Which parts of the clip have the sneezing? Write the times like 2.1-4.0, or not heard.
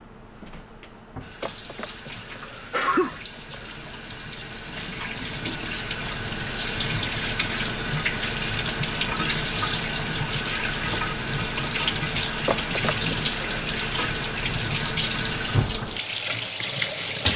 1.4-3.7, 12.4-13.3.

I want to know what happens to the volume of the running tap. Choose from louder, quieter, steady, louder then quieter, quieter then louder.
louder.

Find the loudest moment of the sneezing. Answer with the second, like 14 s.
3 s.